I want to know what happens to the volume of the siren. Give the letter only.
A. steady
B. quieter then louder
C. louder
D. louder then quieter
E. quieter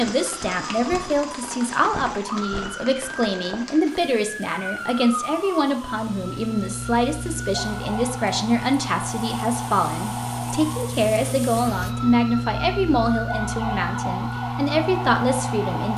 C.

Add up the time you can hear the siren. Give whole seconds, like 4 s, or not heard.
16 s.